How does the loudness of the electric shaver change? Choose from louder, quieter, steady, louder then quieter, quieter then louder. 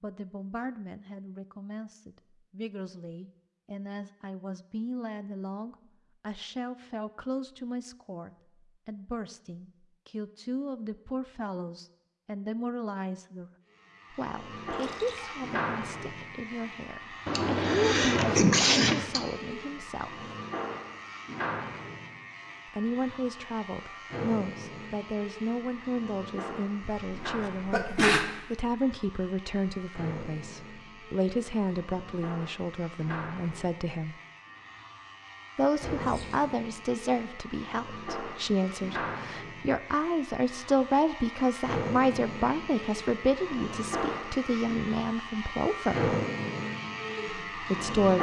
quieter then louder.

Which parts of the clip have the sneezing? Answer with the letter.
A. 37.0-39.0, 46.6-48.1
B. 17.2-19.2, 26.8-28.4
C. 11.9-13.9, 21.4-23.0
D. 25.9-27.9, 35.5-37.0
B.